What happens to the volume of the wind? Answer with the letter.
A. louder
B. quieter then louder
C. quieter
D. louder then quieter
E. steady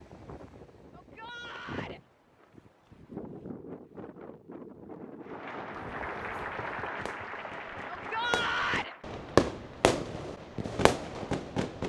A.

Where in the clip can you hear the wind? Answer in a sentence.
The wind can be heard from 0.0 to 6.7 s.